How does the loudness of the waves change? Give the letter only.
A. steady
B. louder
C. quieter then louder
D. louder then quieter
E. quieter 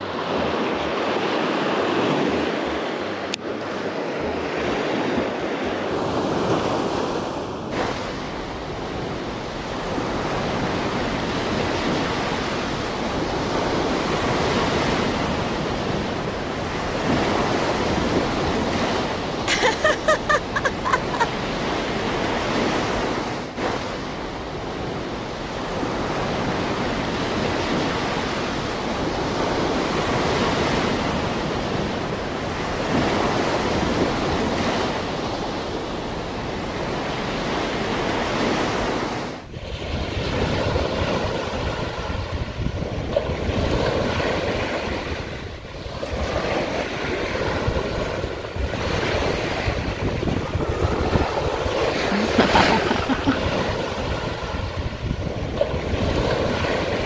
A.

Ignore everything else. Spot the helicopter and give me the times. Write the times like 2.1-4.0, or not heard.
not heard.